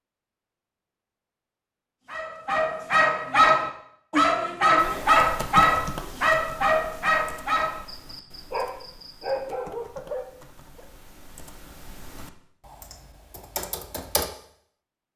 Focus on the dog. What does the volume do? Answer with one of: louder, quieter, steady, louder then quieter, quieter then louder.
quieter.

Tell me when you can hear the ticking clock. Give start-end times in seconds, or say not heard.
not heard.